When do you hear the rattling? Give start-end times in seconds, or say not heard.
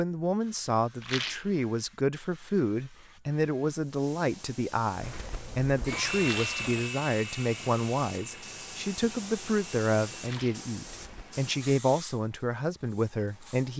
1.0-1.5, 6.2-6.6, 10.2-10.7.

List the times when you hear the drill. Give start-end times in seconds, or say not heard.
5.0-11.2.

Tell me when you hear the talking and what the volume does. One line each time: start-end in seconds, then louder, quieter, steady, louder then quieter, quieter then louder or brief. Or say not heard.
0.0-13.7 steady.